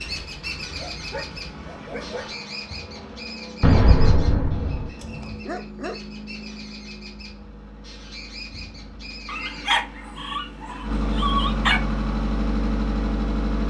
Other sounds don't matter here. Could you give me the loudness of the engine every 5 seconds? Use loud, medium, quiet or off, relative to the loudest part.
quiet, quiet, loud.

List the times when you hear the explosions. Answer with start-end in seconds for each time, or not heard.
3.6-4.9.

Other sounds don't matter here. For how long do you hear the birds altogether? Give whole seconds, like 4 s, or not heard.
10 s.